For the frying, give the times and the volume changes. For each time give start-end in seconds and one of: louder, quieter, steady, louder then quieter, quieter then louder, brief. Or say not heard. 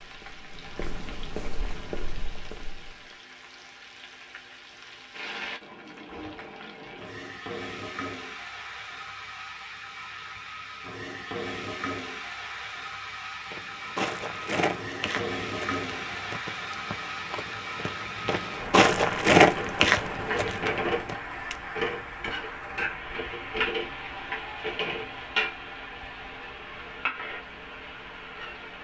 0.0-28.8 louder.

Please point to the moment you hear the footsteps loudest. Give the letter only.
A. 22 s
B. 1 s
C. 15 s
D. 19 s
D.